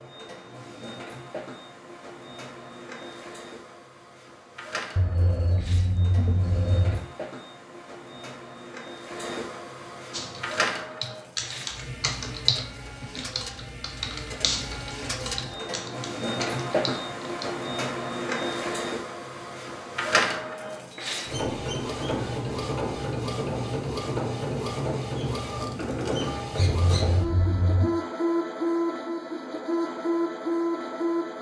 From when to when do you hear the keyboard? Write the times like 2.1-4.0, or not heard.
10.1-17.6.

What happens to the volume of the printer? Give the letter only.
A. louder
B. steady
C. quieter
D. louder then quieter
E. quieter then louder
A.